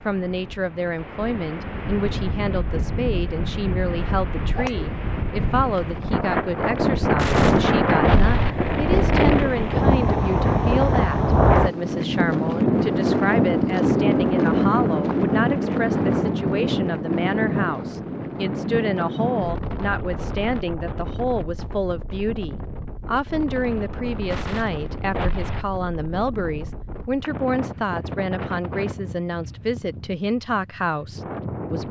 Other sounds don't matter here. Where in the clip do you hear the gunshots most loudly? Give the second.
8 s.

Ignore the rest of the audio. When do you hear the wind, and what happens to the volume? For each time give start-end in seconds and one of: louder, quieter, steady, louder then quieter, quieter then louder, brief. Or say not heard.
0.0-31.8 louder then quieter.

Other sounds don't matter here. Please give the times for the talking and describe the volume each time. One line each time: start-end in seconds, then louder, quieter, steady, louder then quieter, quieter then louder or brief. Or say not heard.
0.1-31.8 steady.